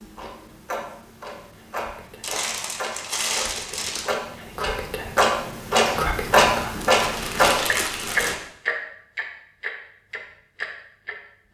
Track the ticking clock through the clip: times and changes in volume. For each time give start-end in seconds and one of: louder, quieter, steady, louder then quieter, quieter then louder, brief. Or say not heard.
0.0-11.2 louder then quieter.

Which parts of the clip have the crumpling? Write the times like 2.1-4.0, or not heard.
2.2-4.1, 6.6-8.3.